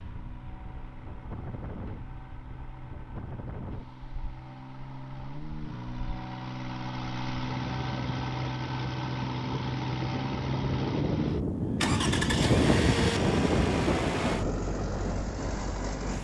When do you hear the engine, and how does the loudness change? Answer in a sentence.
The engine can be heard from 0.0 to 16.1 s, getting louder.